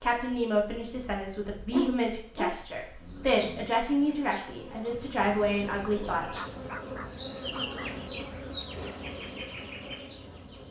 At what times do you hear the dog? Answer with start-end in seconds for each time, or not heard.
1.7-3.7, 6.3-8.0.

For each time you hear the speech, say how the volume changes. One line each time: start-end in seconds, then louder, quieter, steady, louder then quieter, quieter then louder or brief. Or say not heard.
0.0-6.2 steady.